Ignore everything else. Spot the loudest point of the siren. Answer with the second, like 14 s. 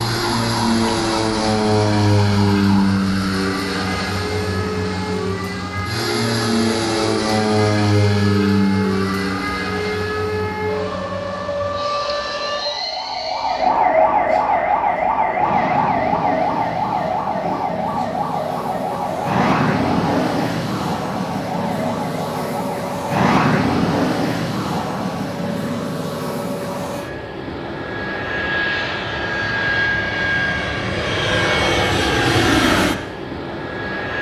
14 s.